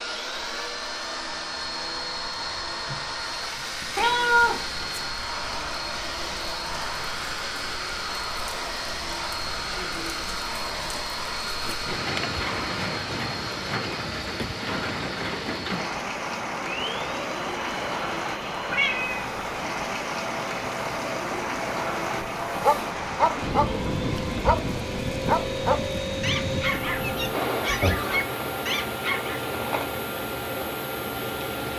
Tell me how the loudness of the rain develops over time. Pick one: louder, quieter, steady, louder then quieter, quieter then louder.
louder.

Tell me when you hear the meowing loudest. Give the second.
4 s.